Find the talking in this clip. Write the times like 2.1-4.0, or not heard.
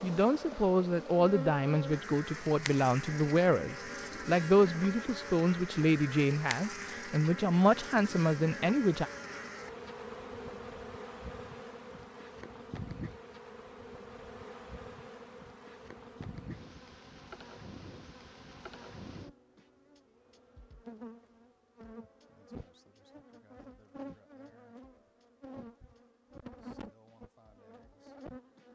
0.0-9.1.